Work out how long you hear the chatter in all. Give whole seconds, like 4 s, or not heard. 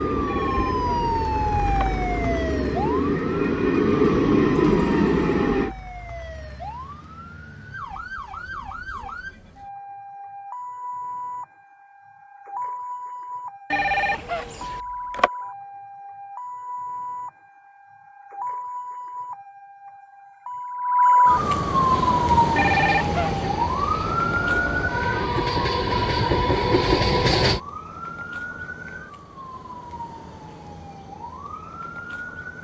not heard.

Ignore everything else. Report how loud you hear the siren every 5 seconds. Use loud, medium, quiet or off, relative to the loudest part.
medium, quiet, quiet, quiet, loud, quiet, quiet.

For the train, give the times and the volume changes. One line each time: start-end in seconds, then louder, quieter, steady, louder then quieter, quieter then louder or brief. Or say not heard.
0.0-5.8 louder
21.9-27.6 louder.